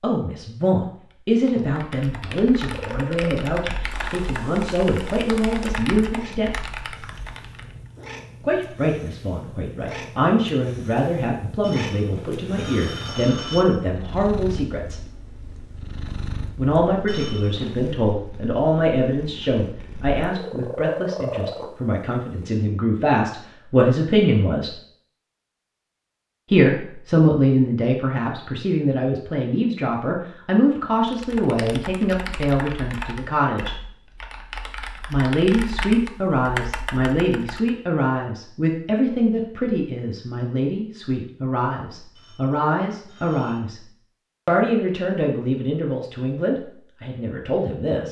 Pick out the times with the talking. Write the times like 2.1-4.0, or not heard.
0.0-6.5, 8.4-15.0, 16.6-24.7, 26.5-33.8, 35.1-43.8, 44.5-48.0.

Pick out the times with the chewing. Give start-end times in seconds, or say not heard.
not heard.